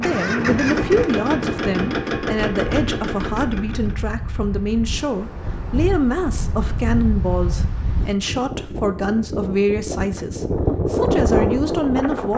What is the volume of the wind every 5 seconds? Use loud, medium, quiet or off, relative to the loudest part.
medium, medium, loud.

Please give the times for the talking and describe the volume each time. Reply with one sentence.
The talking can be heard from 0.0 to 12.3 s, at a steady volume.